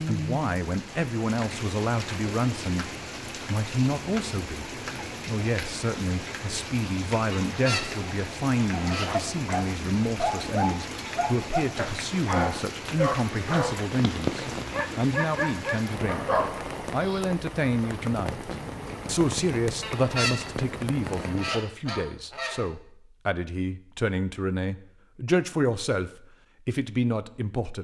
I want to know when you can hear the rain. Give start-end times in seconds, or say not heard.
0.0-21.8.